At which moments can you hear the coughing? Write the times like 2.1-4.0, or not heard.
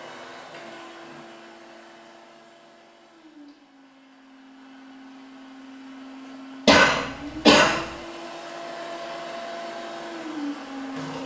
6.7-7.8.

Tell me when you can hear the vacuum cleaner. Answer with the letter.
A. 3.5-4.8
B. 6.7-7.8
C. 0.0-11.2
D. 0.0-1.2
C.